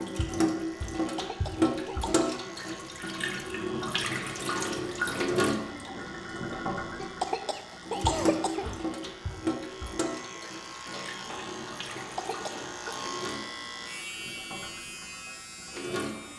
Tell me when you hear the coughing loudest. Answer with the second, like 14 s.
8 s.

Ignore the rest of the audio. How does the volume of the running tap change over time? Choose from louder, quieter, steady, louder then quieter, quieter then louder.
quieter.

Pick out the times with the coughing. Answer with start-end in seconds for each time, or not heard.
1.1-2.2, 7.0-8.7, 11.9-13.0.